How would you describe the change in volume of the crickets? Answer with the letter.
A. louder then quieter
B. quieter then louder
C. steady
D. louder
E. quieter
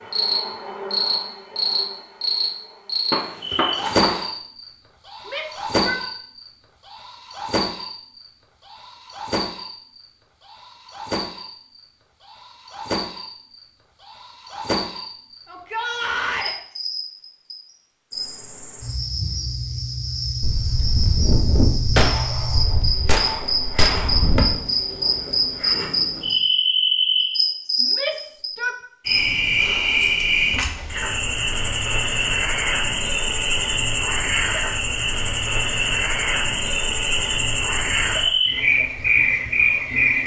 B.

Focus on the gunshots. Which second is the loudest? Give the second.
22 s.